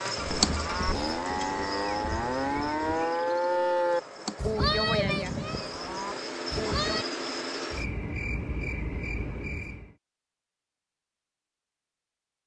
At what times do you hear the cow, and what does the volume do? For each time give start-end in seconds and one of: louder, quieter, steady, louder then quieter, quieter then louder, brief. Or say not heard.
0.0-7.0 louder then quieter.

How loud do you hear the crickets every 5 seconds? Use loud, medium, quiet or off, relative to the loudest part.
loud, loud, off.